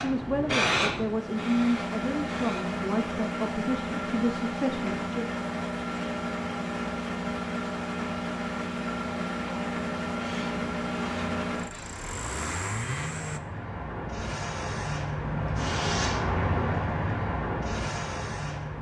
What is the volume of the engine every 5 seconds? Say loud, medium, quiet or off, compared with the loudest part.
loud, loud, loud, off.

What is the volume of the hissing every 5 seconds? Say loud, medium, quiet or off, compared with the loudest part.
loud, off, medium, loud.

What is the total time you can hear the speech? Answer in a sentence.
You can hear the speech for 5 seconds altogether.